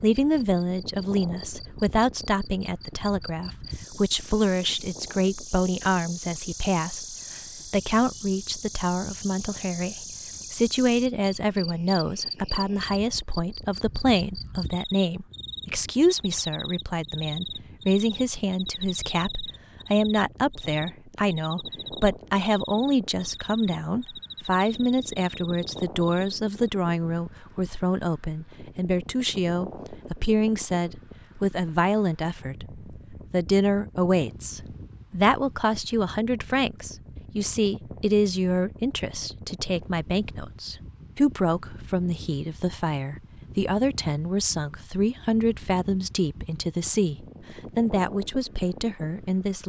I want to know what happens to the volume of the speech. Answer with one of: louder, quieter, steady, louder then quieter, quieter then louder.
steady.